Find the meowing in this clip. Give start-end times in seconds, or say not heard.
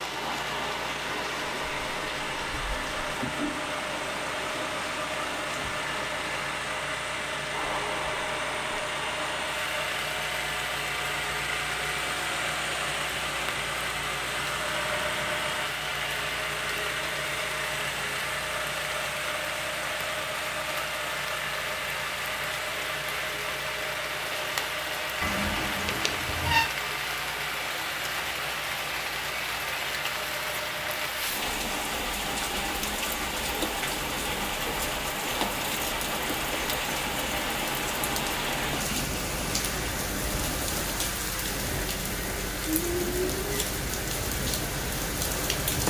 25.2-26.7.